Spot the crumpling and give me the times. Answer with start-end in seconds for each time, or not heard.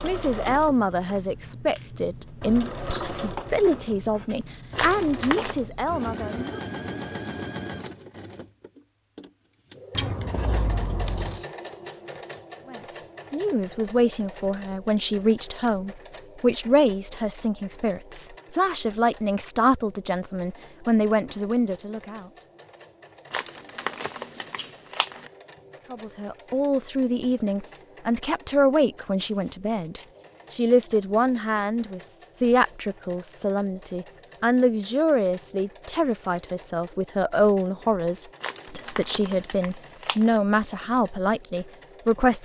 4.8-5.5, 23.3-25.3, 38.4-40.4.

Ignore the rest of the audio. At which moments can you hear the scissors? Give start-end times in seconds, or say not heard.
9.9-11.4, 23.9-24.7, 29.4-30.9.